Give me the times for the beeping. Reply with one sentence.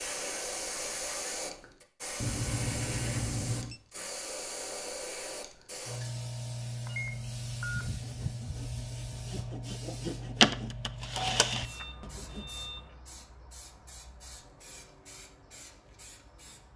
The beeping can be heard from 2.2 to 3.8 s, from 6.8 to 7.9 s and from 11.4 to 13.0 s.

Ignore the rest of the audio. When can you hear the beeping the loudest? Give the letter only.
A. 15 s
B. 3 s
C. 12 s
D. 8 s
B.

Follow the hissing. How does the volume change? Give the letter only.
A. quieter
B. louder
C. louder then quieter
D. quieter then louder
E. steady
A.